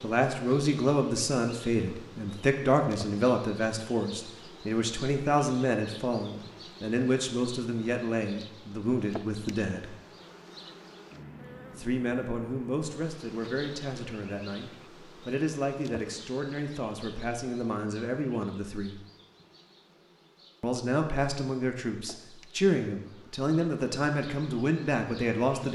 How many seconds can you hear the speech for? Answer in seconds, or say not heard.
22 s.